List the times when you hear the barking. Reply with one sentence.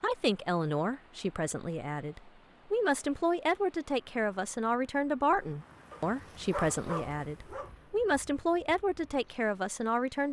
The barking can be heard from 5.9 to 7.7 s.